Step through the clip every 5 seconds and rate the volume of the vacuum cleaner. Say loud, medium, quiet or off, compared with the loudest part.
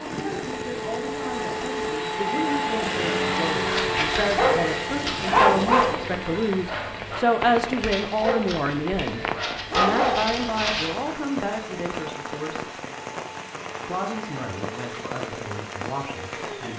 loud, medium, quiet, quiet.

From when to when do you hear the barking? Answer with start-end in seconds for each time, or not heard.
3.5-11.1.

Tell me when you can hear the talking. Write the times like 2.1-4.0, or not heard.
0.1-12.8, 13.8-16.7.